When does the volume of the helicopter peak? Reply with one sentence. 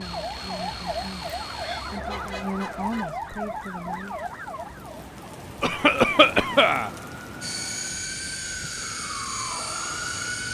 The volume of the helicopter peaks at 8 seconds.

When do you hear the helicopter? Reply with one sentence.
The helicopter can be heard from 0.0 to 3.0 s and from 7.4 to 10.4 s.